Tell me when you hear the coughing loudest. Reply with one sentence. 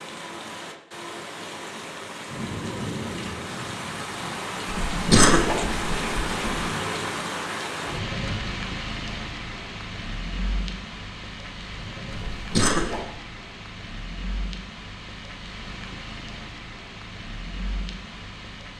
The volume of the coughing peaks at 5 seconds.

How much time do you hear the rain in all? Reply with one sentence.
You can hear the rain for 19 seconds altogether.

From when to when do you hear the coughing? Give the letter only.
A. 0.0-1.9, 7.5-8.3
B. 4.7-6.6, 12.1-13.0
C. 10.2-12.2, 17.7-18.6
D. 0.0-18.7
B.